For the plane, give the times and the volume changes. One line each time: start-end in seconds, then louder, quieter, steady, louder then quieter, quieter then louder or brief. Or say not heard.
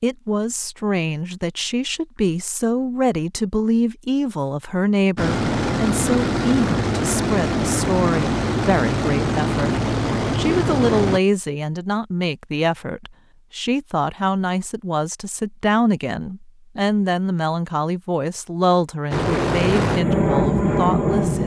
5.2-11.2 steady
19.1-21.4 brief.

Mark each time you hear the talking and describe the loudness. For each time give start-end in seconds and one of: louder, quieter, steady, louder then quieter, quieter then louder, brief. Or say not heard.
0.0-21.4 steady.